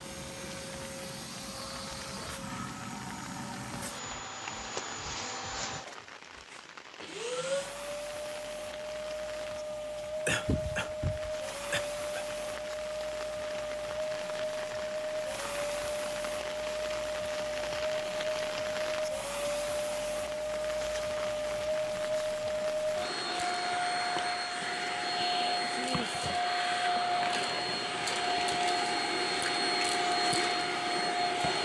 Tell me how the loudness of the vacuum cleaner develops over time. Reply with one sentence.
The loudness of the vacuum cleaner goes up.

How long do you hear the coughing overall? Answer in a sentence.
The coughing can be heard for 2 seconds in total.